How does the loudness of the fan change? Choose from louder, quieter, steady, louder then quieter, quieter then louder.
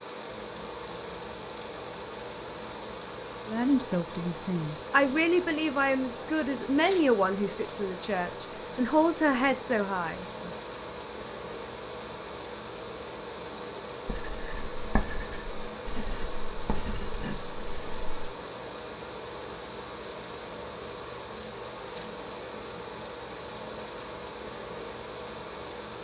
steady.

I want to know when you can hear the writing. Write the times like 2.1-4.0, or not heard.
14.1-18.1.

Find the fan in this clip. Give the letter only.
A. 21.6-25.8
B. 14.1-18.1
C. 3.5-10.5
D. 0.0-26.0
D.